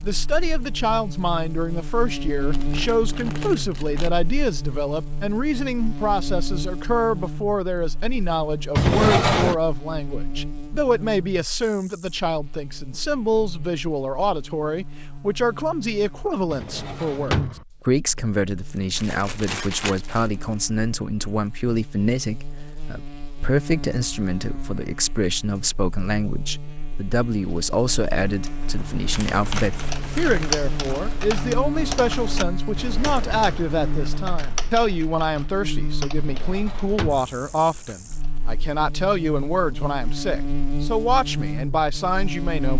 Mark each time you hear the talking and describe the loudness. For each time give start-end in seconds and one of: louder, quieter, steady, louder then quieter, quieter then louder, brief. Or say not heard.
0.0-42.7 steady.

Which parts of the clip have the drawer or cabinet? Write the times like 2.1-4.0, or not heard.
8.8-9.6, 16.5-17.6, 36.1-37.3.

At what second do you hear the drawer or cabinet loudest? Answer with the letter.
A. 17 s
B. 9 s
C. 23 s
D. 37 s
B.